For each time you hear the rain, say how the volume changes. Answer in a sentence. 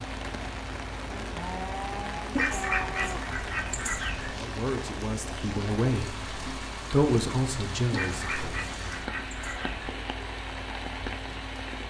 You can hear the rain from 0.0 to 11.8 s, at a steady volume.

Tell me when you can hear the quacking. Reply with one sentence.
The quacking can be heard from 2.4 to 4.3 s and from 7.9 to 9.9 s.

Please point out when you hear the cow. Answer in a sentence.
You can hear the cow from 1.1 to 3.4 s.